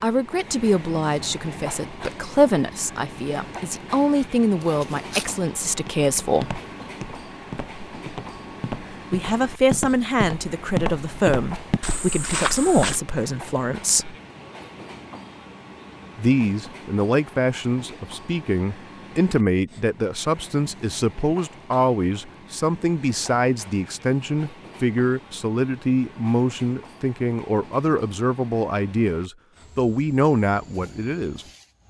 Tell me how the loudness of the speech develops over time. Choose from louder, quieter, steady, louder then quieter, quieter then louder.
steady.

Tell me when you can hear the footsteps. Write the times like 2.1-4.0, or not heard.
4.6-13.0.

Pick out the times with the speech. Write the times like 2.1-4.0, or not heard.
0.0-6.6, 9.1-14.2, 16.1-31.4.